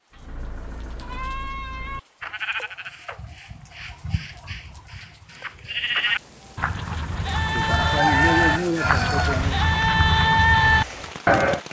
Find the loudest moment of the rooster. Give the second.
8 s.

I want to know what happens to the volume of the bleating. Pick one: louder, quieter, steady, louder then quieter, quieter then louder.
quieter then louder.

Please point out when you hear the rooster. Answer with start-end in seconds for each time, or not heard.
7.5-9.6.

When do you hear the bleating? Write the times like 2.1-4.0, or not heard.
0.1-11.6.